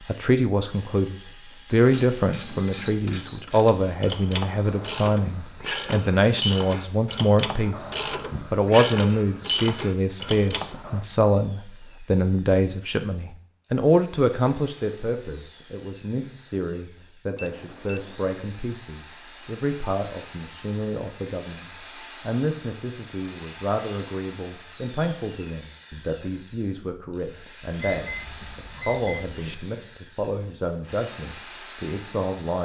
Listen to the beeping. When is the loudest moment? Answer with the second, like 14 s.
3 s.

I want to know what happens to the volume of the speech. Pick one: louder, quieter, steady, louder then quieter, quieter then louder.
quieter.